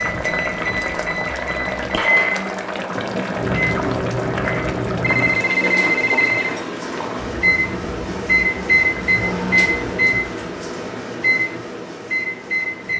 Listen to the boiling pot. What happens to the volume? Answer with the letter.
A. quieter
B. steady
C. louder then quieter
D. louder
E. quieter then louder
A.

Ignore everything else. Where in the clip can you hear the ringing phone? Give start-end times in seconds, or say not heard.
5.0-6.5.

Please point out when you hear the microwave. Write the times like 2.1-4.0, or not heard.
0.0-12.9.